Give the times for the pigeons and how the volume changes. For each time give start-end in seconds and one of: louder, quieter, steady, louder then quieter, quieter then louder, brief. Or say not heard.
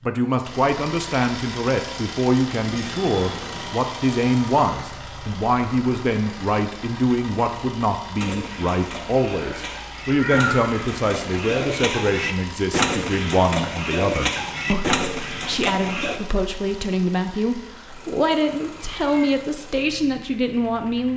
8.2-16.2 louder.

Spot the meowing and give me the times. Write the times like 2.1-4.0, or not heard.
2.6-3.7, 9.3-10.8, 18.5-19.4.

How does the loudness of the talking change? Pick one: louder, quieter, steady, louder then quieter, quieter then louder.
steady.